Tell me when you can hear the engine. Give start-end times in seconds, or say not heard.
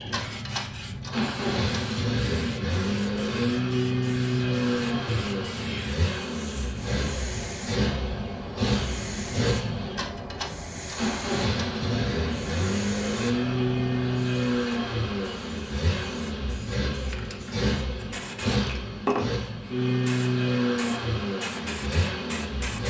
0.0-22.8.